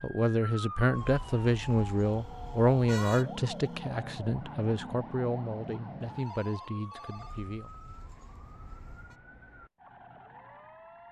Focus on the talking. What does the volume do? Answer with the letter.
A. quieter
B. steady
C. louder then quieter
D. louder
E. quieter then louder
A.